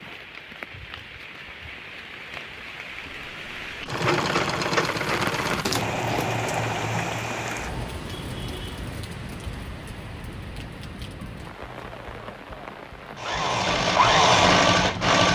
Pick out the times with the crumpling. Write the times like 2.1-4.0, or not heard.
5.6-6.3.